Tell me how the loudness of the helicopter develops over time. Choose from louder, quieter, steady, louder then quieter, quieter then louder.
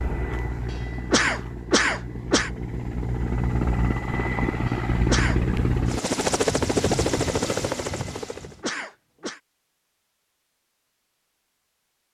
louder.